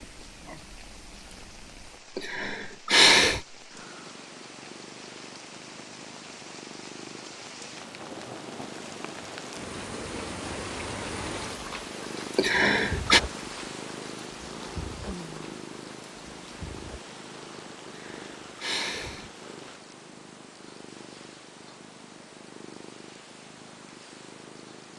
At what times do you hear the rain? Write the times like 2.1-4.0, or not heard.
0.0-19.8.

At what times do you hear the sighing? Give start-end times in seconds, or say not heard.
2.1-3.4, 12.3-13.2, 17.9-19.3.